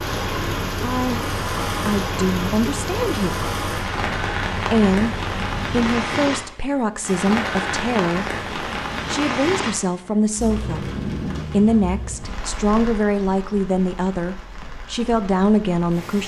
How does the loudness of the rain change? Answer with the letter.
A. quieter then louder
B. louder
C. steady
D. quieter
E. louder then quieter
D.